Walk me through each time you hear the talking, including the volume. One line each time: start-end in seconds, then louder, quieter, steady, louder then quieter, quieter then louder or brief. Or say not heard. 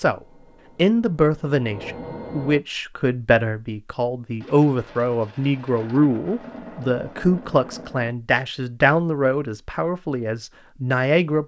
0.0-11.4 steady.